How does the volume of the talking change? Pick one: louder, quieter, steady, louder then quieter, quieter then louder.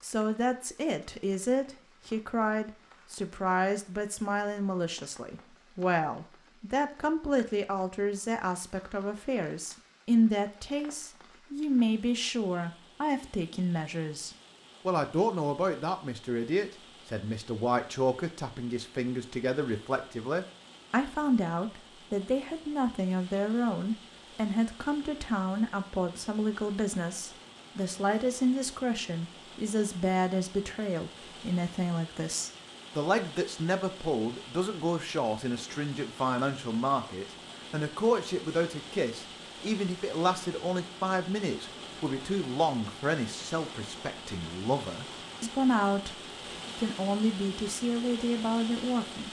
steady.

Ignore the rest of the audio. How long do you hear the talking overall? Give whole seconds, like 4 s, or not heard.
49 s.